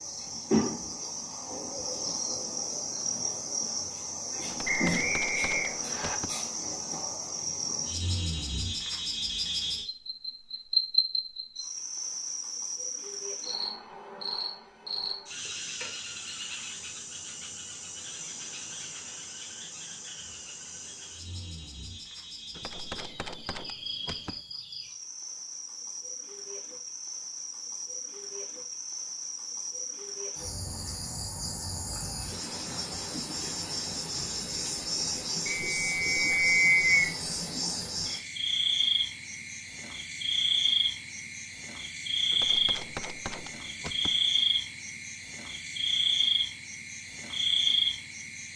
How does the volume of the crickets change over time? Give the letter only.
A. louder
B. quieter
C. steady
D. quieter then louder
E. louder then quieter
D.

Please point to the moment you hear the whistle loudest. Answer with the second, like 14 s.
37 s.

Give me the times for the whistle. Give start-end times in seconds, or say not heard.
4.7-6.2, 35.5-37.1.